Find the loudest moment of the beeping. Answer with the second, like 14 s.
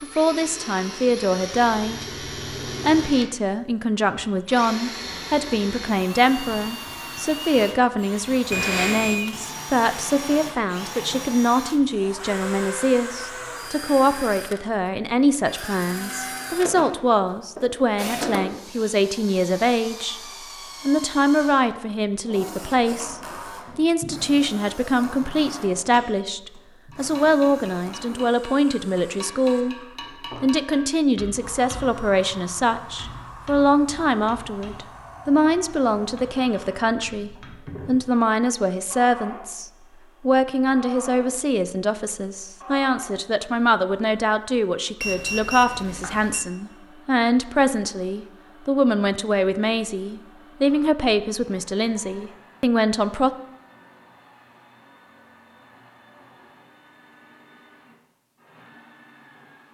9 s.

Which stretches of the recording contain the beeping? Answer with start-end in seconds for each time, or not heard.
8.5-9.2, 45.0-46.5.